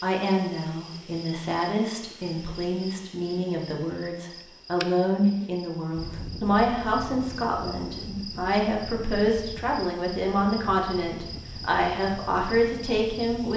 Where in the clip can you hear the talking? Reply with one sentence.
You can hear the talking from 0.0 to 13.5 s.